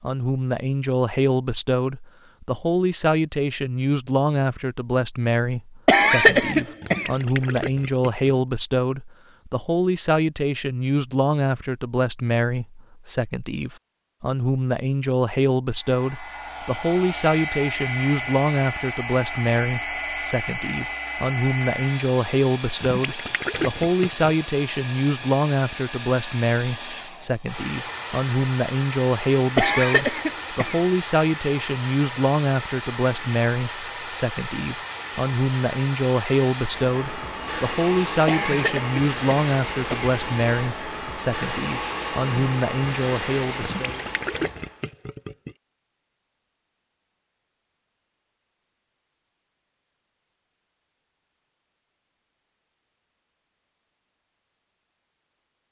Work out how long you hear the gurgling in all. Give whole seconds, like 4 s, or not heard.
5 s.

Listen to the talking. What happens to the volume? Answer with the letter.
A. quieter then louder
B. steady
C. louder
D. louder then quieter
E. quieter
B.